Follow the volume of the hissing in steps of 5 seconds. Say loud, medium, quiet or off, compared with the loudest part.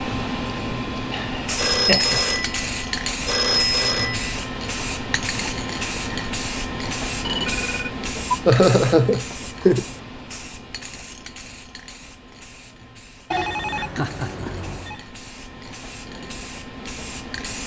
loud, loud, quiet, medium.